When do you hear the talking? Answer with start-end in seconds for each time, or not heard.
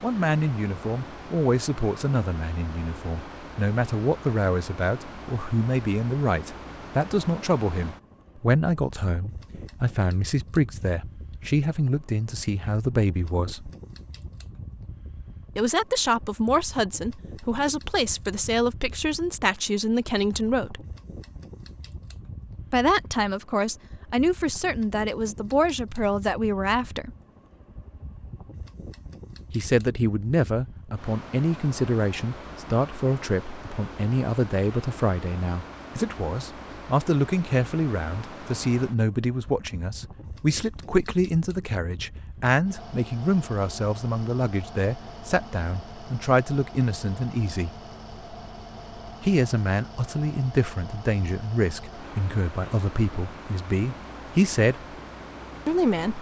0.0-13.7, 15.6-20.9, 22.7-27.1, 29.5-47.7, 49.2-54.8, 55.6-56.1.